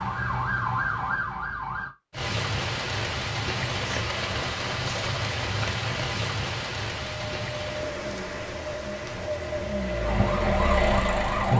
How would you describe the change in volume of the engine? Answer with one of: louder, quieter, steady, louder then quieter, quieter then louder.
louder.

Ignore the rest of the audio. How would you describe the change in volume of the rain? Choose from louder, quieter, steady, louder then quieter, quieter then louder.
quieter.